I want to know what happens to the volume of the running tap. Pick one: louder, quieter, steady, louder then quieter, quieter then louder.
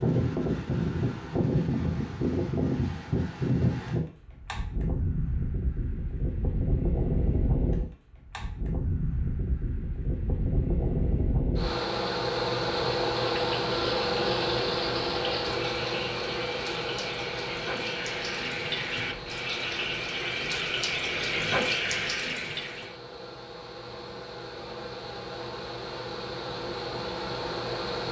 louder.